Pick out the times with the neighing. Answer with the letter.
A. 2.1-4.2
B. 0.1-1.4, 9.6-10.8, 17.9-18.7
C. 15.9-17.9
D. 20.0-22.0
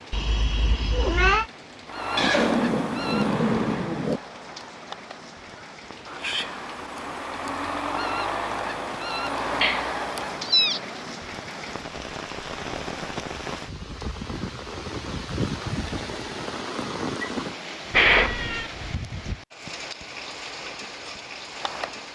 A.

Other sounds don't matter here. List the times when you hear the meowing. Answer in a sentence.
You can hear the meowing from 0.1 to 1.4 s, from 9.6 to 10.8 s and from 17.9 to 18.7 s.